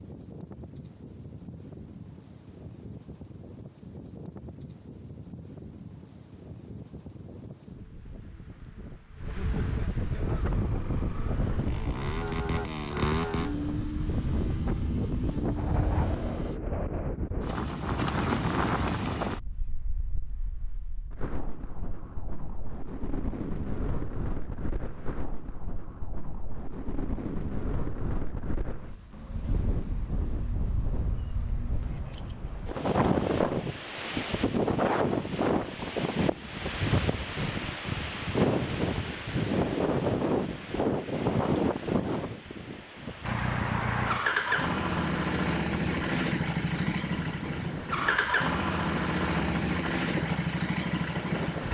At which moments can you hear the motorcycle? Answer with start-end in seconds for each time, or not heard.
10.2-16.6, 43.2-51.6.